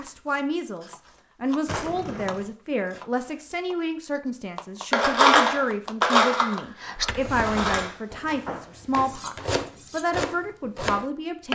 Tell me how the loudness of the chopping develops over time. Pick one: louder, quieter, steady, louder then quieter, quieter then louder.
louder.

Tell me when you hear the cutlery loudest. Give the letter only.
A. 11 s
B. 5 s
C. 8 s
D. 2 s
B.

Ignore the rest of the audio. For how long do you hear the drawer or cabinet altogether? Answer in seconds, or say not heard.
2 s.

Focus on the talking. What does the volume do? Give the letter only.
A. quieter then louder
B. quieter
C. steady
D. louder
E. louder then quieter
C.